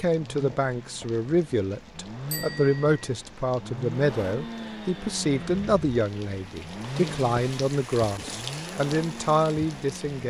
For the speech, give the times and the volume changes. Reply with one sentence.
The speech can be heard from 0.0 to 10.2 s, at a steady volume.